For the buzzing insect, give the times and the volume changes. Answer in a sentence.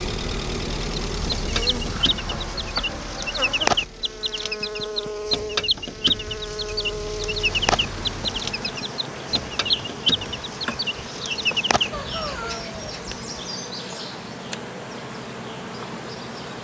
You can hear the buzzing insect from 0.0 to 16.5 s, at a steady volume.